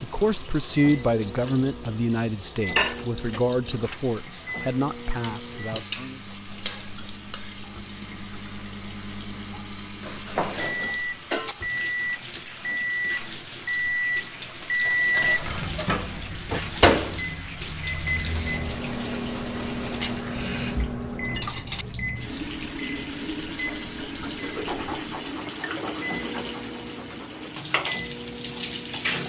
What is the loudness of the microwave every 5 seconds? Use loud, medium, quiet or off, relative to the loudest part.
medium, quiet, loud, loud, medium, medium.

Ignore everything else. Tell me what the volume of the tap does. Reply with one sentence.
The loudness of the tap goes up.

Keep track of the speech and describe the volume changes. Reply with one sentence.
The loudness of the speech goes down.